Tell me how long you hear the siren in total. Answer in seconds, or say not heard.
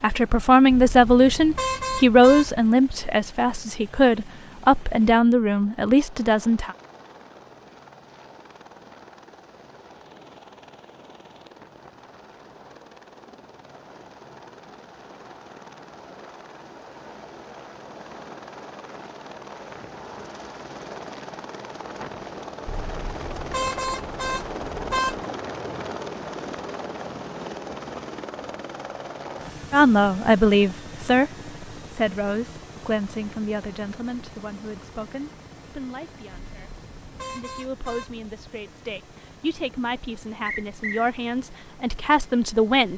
not heard.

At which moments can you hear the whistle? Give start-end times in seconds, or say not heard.
40.5-41.1.